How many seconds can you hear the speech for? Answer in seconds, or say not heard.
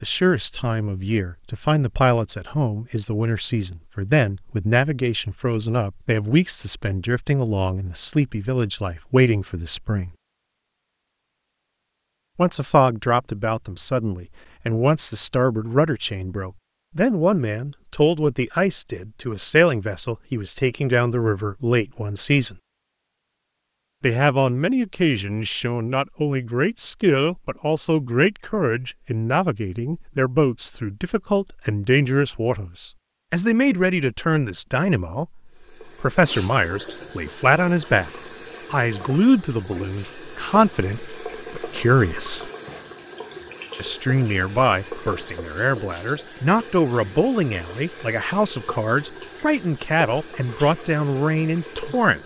47 s.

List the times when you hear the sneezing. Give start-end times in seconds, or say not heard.
not heard.